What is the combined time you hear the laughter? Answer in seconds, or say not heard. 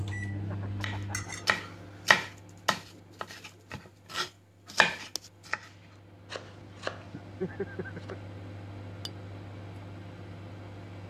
2 s.